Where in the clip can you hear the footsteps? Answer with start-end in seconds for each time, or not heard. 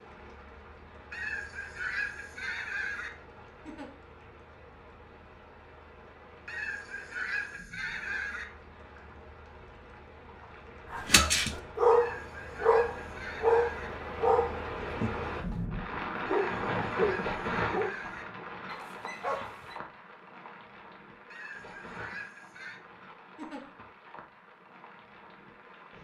not heard.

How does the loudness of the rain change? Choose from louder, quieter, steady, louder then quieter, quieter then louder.
louder then quieter.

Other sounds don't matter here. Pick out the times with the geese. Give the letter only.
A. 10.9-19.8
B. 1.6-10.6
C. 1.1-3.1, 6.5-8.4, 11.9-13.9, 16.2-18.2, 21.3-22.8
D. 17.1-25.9
C.